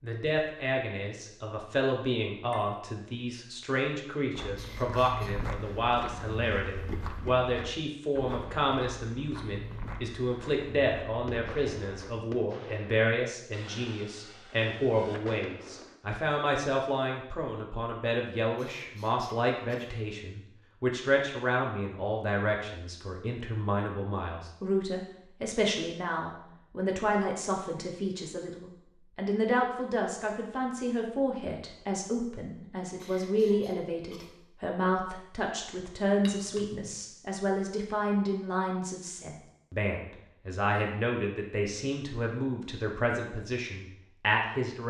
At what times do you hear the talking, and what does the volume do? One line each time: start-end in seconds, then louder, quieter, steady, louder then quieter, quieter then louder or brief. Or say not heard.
0.0-44.8 steady.